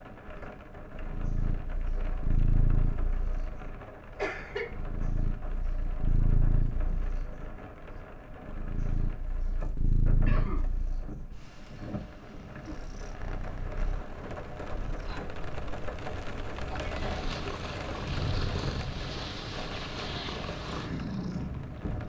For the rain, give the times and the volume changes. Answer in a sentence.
You can hear the rain from 0.0 to 22.0 s, getting louder.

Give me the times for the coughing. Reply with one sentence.
You can hear the coughing from 4.2 to 4.7 s, from 10.2 to 10.7 s and from 16.7 to 17.3 s.